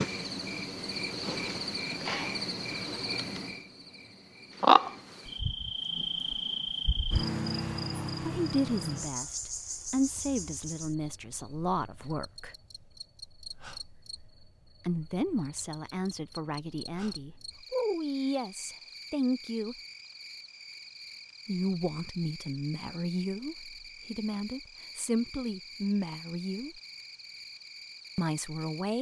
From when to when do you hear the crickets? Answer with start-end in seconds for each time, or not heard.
0.0-28.9.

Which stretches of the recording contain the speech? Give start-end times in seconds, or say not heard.
8.2-12.6, 14.8-19.8, 21.4-26.8, 28.1-28.9.